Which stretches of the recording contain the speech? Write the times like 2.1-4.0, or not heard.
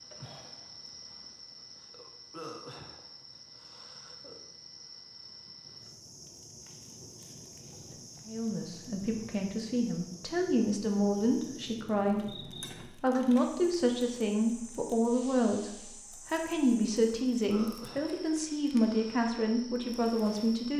8.2-20.7.